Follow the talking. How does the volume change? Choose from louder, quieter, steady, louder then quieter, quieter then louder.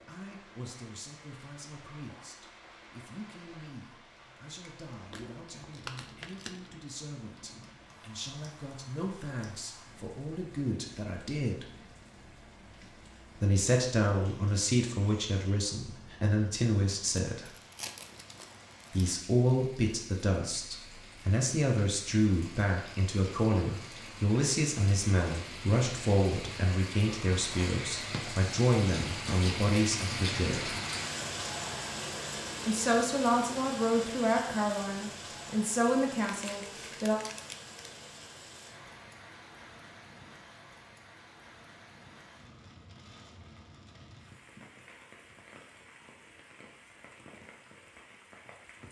louder.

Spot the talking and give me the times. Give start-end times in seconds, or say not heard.
0.0-11.7, 13.4-17.5, 18.9-30.8, 32.6-37.1.